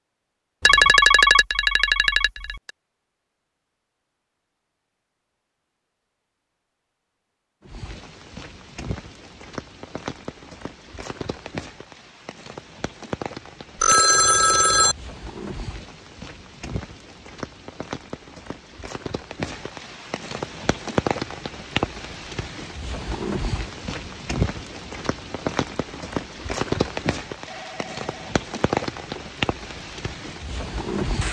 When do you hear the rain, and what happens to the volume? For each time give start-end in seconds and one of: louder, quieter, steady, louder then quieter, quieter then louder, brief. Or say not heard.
7.6-31.2 louder.